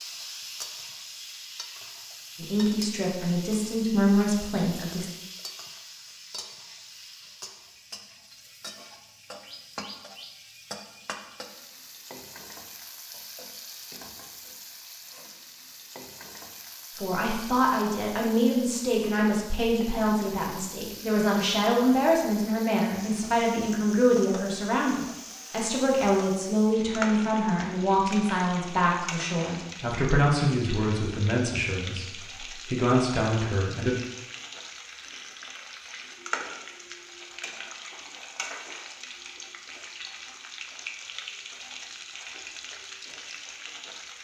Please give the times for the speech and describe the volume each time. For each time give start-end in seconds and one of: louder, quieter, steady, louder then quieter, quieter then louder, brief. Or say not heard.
2.4-5.1 brief
16.9-34.0 steady.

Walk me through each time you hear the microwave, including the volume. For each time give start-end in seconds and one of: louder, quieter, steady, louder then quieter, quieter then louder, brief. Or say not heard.
not heard.